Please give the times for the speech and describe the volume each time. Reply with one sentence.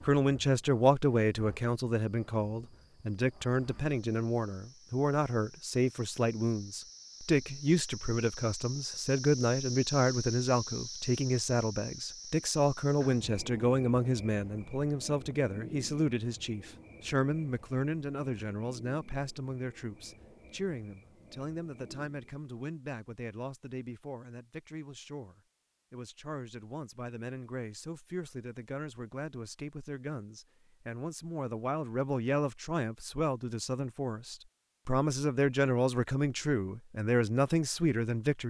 You can hear the speech from 0.0 to 38.4 s, getting quieter then louder.